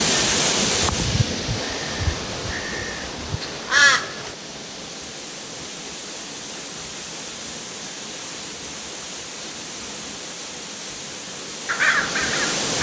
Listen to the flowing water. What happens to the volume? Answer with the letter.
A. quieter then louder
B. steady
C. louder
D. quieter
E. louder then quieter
D.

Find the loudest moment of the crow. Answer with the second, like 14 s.
4 s.